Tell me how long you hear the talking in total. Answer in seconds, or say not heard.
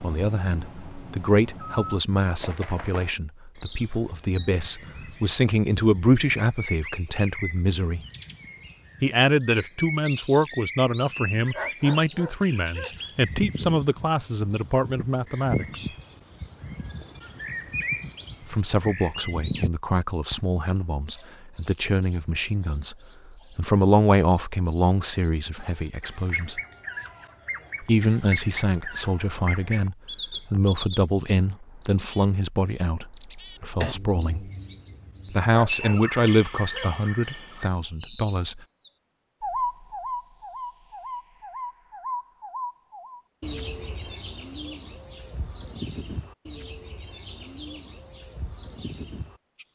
33 s.